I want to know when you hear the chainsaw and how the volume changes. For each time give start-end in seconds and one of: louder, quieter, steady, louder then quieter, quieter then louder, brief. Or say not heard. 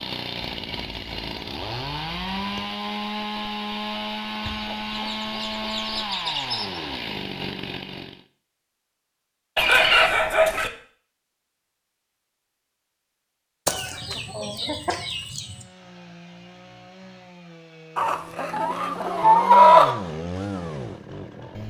0.0-8.2 steady
15.2-21.6 louder.